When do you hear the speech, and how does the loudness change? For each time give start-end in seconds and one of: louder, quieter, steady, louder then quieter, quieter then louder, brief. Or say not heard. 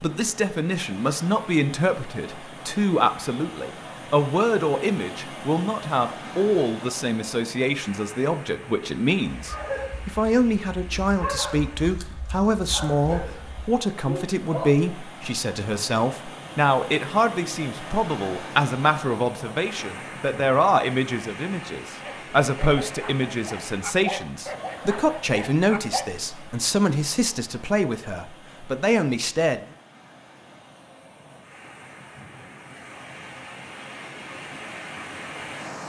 0.0-29.6 steady.